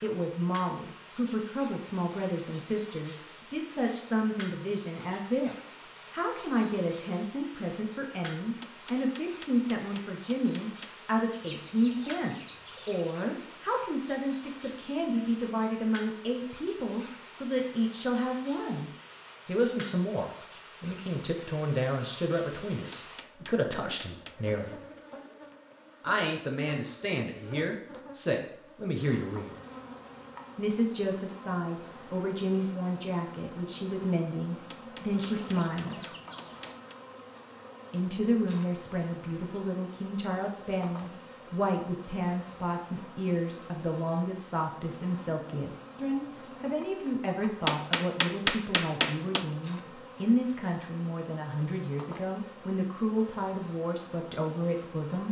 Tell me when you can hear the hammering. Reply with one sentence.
The hammering can be heard from 8.6 to 11.0 s, from 22.9 to 24.4 s, from 34.7 to 37.0 s and from 47.6 to 49.5 s.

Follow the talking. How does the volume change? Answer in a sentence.
The volume of the talking stays about the same.